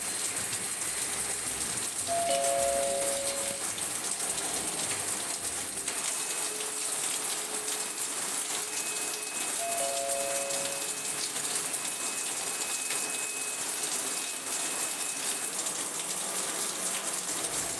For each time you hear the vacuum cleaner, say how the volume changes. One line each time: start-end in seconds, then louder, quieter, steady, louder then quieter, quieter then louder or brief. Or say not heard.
0.0-17.7 steady.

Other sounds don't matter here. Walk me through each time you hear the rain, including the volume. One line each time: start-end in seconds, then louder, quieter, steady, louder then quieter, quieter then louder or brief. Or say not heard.
0.0-17.7 steady.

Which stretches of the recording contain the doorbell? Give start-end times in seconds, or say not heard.
2.0-3.6, 9.6-10.8.